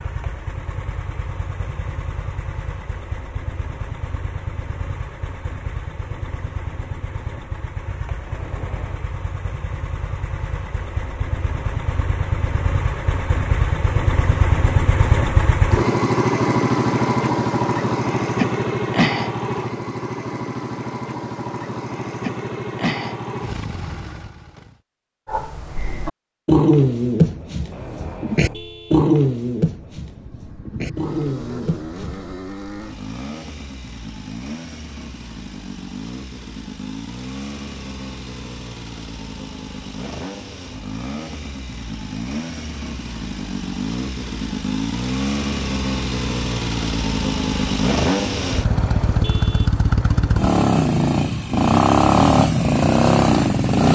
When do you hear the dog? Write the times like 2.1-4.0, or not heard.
25.2-32.4.